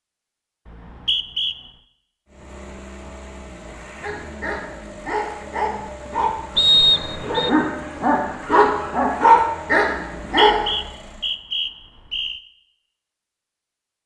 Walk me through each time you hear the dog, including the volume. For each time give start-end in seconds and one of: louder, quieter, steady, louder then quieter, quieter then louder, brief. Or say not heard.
4.0-10.7 louder.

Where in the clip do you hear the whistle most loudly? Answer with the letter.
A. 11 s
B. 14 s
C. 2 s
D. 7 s
D.